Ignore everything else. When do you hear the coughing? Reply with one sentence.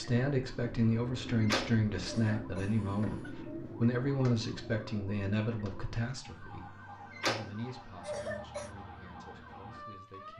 You can hear the coughing from 2.0 to 3.4 s and from 8.0 to 8.8 s.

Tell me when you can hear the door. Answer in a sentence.
You can hear the door from 1.4 to 1.8 s and from 7.1 to 7.5 s.